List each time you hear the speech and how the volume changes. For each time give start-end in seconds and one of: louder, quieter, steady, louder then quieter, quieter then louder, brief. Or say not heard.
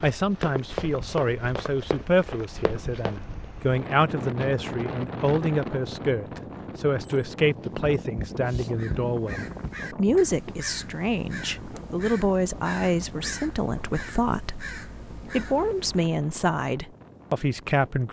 0.0-18.0 steady.